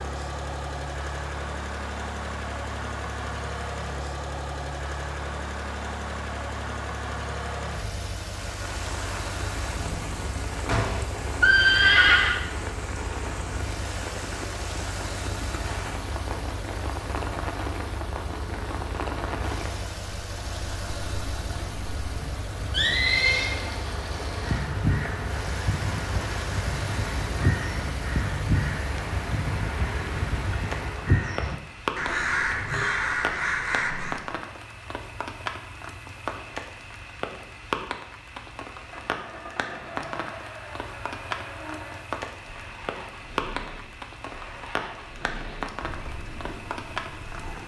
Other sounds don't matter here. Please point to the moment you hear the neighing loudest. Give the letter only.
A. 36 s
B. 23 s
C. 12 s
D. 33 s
C.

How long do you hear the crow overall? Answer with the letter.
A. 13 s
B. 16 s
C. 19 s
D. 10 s
D.